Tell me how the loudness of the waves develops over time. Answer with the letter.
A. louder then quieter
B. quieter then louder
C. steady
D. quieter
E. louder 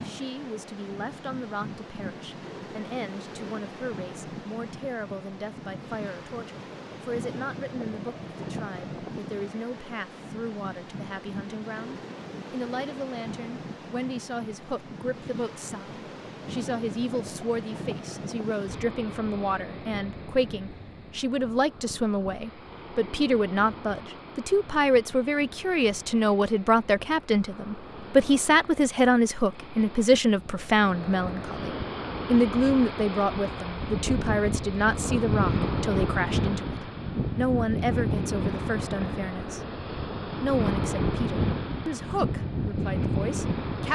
E.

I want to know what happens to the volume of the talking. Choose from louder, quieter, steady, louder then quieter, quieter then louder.
louder then quieter.